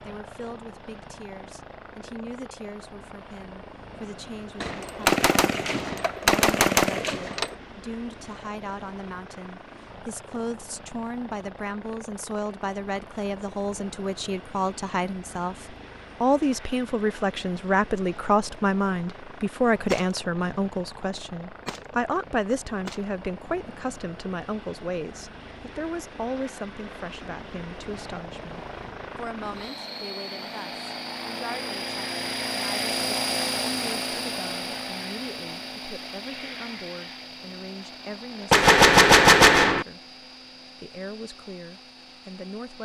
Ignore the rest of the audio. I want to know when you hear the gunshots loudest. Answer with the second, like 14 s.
39 s.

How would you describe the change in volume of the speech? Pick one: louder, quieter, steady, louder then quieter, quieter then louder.
louder then quieter.